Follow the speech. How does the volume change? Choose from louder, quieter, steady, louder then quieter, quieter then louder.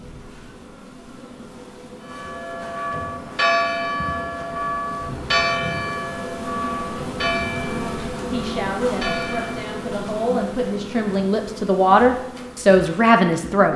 louder.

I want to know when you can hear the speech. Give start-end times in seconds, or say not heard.
8.2-13.7.